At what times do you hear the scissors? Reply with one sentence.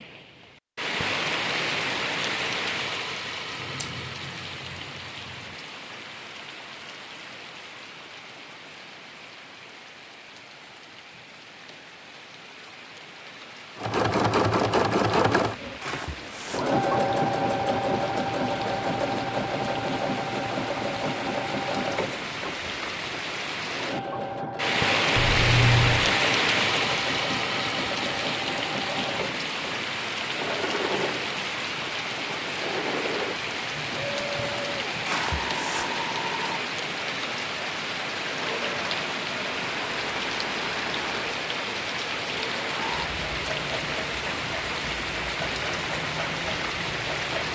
You can hear the scissors from 3.6 to 5.5 s and from 25.1 to 26.1 s.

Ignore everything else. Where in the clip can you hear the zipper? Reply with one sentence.
The zipper can be heard from 15.8 to 16.8 s and from 35.0 to 36.0 s.